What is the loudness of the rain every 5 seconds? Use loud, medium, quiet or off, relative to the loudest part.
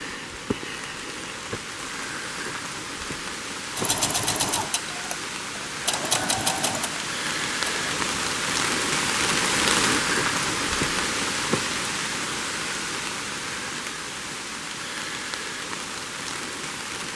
medium, loud, loud, medium.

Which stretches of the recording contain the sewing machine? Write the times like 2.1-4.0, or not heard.
3.8-8.1.